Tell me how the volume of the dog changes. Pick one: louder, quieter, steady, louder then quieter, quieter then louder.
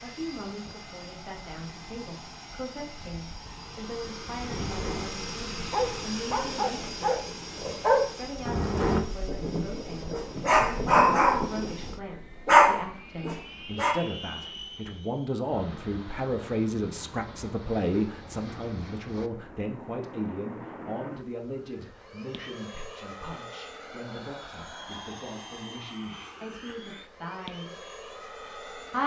louder.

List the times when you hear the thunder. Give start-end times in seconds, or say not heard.
9.2-12.0.